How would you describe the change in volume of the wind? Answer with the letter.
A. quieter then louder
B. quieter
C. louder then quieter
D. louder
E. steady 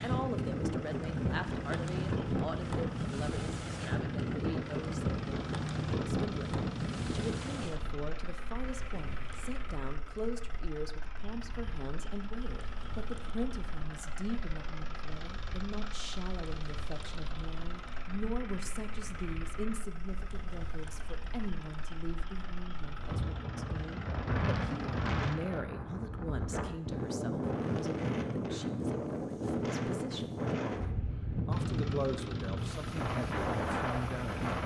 A.